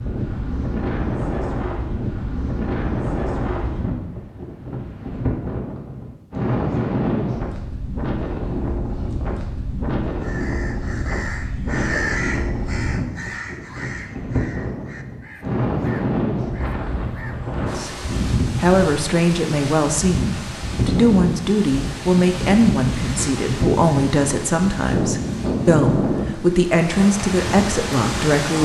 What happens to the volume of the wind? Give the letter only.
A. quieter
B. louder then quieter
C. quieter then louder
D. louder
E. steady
E.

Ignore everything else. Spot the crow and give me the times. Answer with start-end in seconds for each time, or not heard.
10.2-17.4.